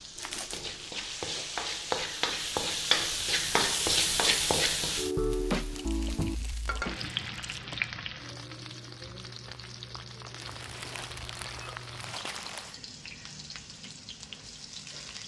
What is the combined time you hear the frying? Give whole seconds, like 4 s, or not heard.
15 s.